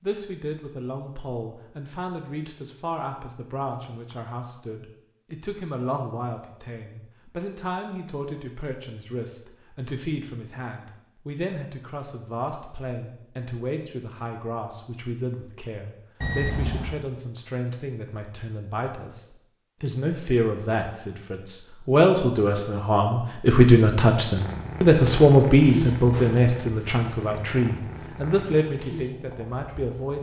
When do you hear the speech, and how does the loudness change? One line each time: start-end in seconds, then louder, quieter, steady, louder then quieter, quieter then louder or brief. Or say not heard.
0.0-30.1 louder.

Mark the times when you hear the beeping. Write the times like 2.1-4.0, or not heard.
16.2-16.9.